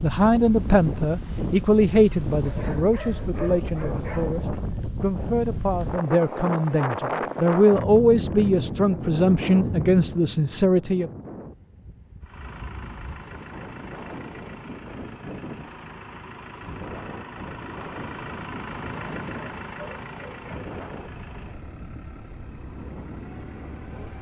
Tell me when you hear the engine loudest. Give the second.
19 s.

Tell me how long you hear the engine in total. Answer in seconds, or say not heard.
12 s.